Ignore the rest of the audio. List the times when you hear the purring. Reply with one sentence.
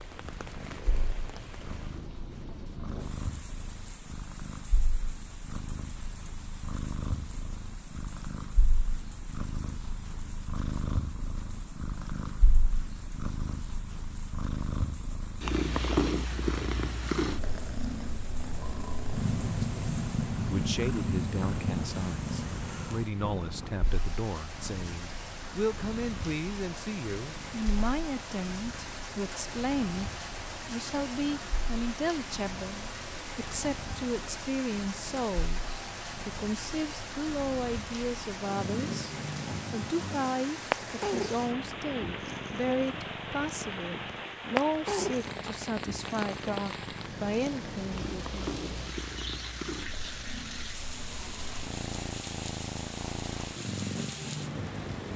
You can hear the purring from 0.0 to 55.1 s.